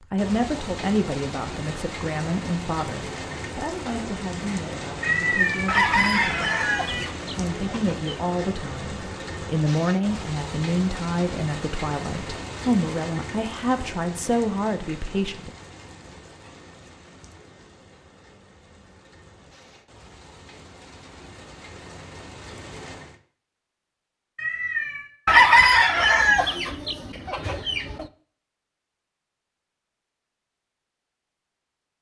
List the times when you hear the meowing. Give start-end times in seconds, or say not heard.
5.0-7.0, 24.4-25.1.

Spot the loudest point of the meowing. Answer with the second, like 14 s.
5 s.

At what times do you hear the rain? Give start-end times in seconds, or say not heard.
0.0-23.2.